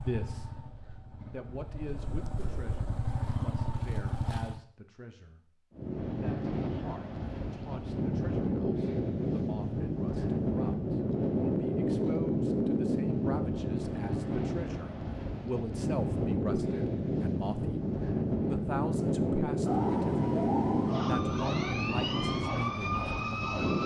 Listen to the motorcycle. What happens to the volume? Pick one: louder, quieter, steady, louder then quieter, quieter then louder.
louder.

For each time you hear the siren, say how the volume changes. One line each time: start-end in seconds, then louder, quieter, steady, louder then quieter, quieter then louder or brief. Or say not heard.
19.6-23.8 steady.